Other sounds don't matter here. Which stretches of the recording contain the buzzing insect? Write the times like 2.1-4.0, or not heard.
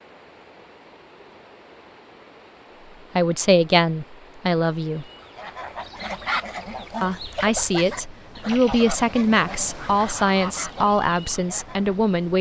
not heard.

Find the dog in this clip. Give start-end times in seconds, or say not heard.
not heard.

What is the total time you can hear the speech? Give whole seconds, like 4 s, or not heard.
7 s.